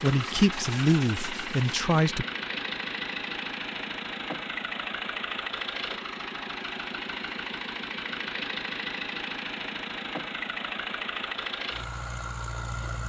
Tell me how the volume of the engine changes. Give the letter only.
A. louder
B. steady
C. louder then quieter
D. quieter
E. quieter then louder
B.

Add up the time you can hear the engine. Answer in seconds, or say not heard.
13 s.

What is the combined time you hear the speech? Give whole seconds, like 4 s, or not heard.
2 s.